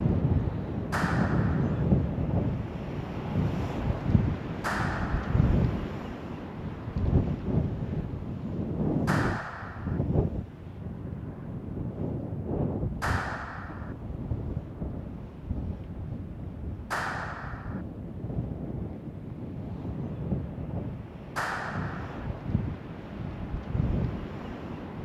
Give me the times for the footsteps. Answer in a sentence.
You can't hear the footsteps here.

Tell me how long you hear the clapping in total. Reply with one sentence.
The clapping can be heard for 6 seconds in total.